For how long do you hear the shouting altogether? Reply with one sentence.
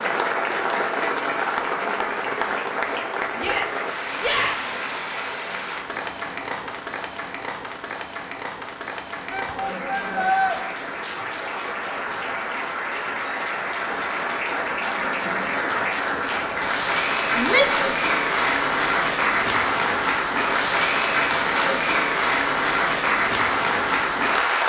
The shouting can be heard for 3 seconds in total.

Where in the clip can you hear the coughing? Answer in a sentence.
The coughing can't be heard in this clip.